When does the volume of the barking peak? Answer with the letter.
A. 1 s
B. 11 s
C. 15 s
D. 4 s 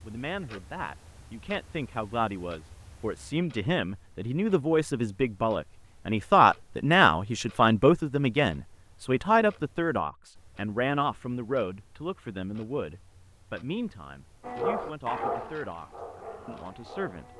C.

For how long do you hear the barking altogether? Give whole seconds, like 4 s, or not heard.
3 s.